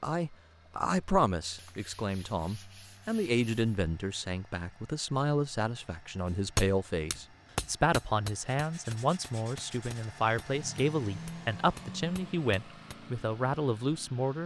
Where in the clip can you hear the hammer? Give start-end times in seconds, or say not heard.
6.3-12.9.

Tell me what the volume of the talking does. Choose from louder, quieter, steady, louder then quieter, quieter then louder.
steady.